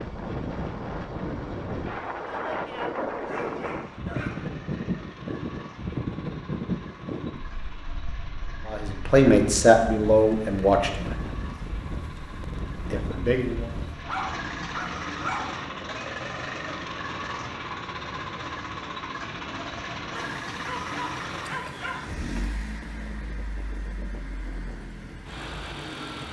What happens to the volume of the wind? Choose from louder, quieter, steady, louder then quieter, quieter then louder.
quieter.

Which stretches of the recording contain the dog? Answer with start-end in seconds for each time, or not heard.
3.2-4.5, 14.0-15.5, 20.1-22.0.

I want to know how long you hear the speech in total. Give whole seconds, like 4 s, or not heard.
3 s.